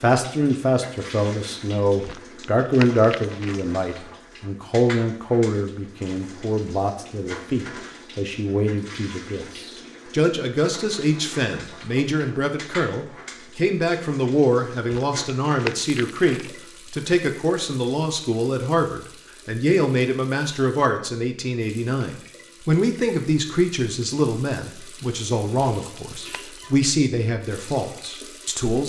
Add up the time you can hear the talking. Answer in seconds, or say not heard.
29 s.